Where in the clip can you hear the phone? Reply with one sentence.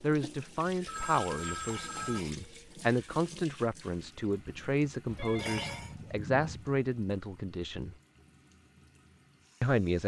The phone can be heard from 0.8 to 2.2 s and from 5.2 to 6.8 s.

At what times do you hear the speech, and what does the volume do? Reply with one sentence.
You can hear the speech from 0.0 to 8.0 s, at a steady volume; and briefly from 9.6 to 10.0 s.